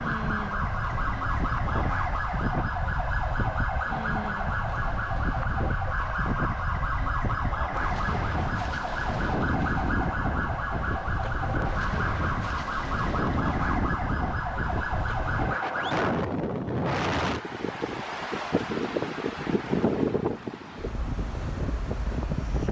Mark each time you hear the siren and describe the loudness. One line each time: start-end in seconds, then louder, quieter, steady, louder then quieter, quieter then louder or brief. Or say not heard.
0.0-16.1 steady.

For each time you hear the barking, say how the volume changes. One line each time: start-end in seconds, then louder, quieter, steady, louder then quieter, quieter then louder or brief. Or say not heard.
not heard.